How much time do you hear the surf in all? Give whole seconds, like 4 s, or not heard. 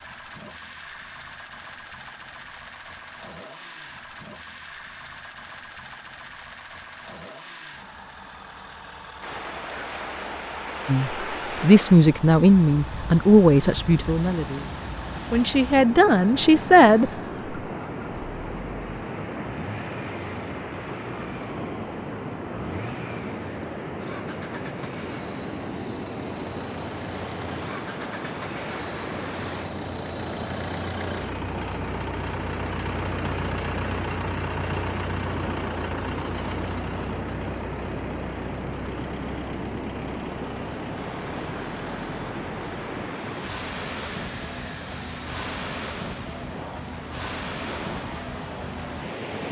40 s.